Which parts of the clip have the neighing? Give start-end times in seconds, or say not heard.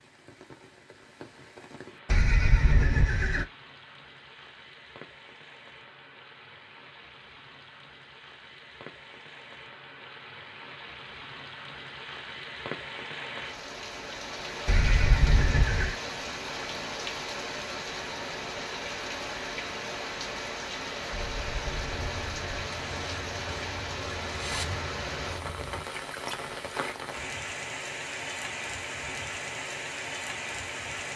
2.0-3.5, 14.7-15.9, 21.1-22.6.